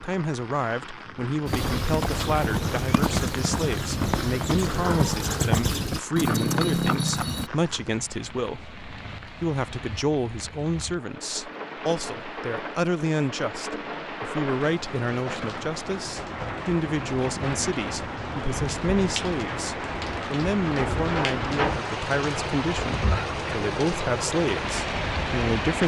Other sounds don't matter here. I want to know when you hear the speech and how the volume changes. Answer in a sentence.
You can hear the speech from 0.0 to 25.8 s, at a steady volume.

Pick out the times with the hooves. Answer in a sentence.
You can hear the hooves from 1.4 to 7.5 s.